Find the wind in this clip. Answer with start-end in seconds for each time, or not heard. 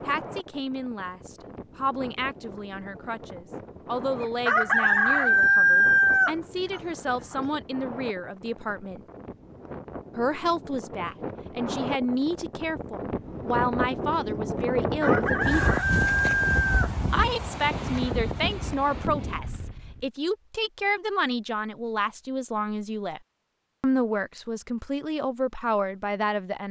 0.0-20.1.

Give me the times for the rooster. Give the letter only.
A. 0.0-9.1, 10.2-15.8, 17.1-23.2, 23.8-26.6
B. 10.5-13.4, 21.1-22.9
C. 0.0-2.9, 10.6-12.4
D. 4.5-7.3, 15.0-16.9
D.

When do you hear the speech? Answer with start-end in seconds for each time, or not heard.
0.0-9.1, 10.2-15.8, 17.1-23.2, 23.8-26.6.